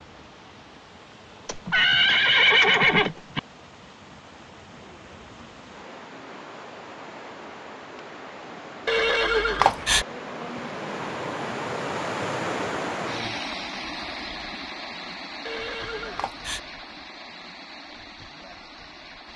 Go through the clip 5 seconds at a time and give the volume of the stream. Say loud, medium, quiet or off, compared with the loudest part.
quiet, medium, loud, medium.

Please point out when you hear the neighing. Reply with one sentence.
The neighing can be heard from 1.4 to 3.4 s, from 8.8 to 10.1 s and from 15.4 to 16.6 s.